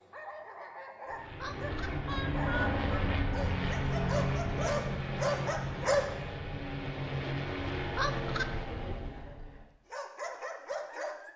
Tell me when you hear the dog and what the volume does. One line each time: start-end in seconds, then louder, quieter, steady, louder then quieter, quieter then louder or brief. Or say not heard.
0.0-6.0 louder
9.9-11.3 brief.